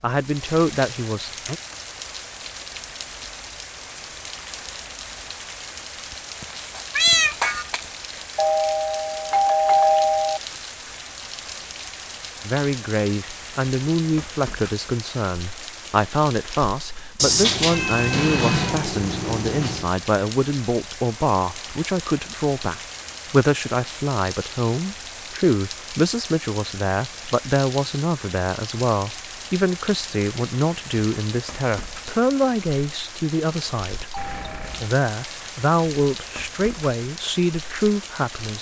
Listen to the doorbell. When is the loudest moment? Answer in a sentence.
The loudest moment of the doorbell is at 10 seconds.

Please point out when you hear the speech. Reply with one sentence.
The speech can be heard from 0.0 to 1.6 s and from 12.4 to 38.5 s.